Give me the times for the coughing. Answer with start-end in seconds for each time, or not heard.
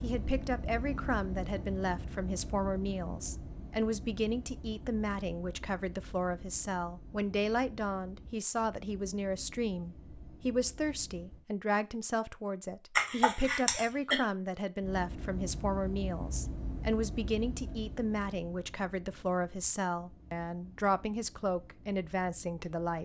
12.9-14.2.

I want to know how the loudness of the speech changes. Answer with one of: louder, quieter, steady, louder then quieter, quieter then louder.
steady.